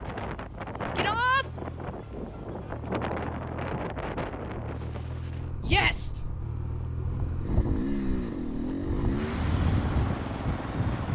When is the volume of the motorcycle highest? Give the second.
8 s.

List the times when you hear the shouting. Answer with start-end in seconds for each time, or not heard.
0.9-1.4, 5.7-6.2.